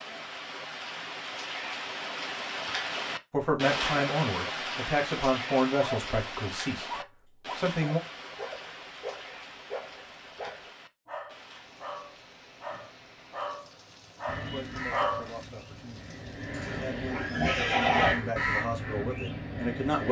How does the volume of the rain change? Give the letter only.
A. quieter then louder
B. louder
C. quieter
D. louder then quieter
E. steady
C.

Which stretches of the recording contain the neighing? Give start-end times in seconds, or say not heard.
16.5-18.1.